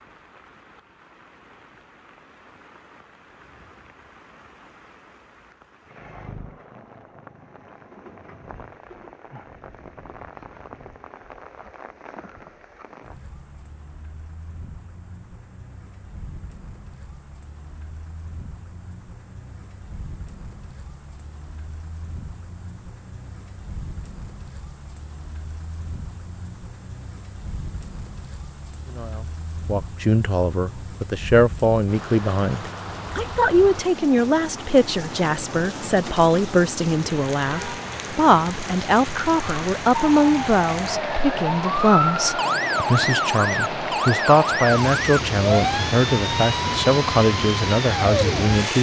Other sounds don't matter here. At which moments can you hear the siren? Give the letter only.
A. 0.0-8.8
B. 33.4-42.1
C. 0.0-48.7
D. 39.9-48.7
D.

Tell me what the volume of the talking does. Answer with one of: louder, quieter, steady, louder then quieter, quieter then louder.
steady.